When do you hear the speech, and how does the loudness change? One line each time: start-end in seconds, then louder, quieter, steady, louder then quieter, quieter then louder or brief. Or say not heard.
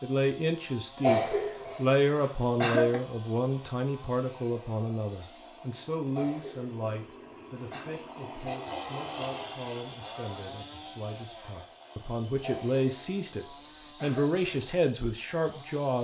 0.0-15.9 quieter then louder.